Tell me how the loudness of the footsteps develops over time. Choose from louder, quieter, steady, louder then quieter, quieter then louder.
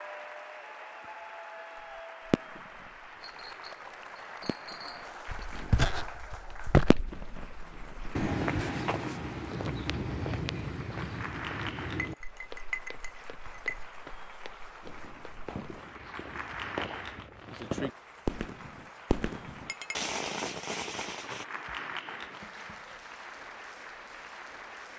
quieter.